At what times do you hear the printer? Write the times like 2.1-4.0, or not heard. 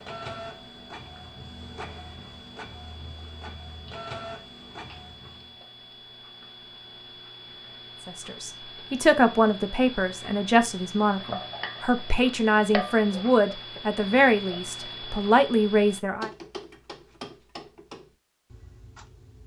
0.0-5.5.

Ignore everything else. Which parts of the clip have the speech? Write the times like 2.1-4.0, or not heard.
8.1-16.3.